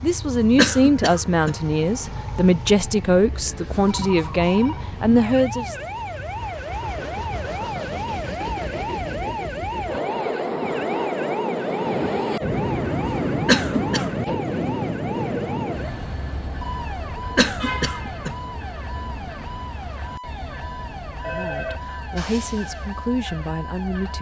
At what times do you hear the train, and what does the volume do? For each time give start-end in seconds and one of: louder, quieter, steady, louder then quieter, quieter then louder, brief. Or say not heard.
0.0-24.1 louder then quieter.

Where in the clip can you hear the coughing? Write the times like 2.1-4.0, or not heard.
0.6-1.6, 13.4-14.1, 17.4-18.3.